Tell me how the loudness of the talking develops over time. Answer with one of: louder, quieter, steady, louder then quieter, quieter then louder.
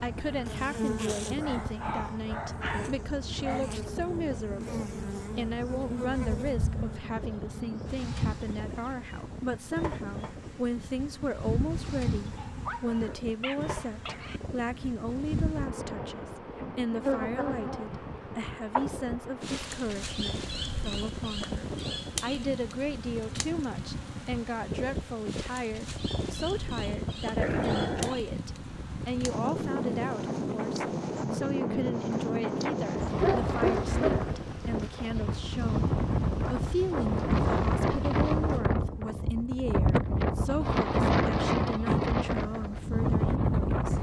steady.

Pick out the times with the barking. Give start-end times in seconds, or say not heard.
1.2-3.6, 12.3-14.4, 27.4-28.2, 33.2-34.3.